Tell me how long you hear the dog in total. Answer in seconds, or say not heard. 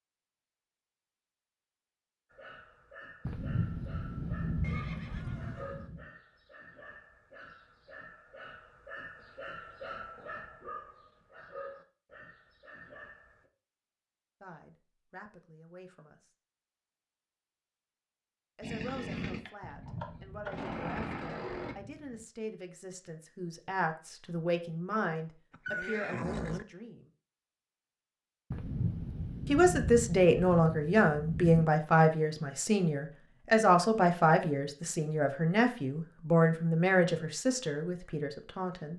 11 s.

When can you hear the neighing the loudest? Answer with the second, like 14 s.
26 s.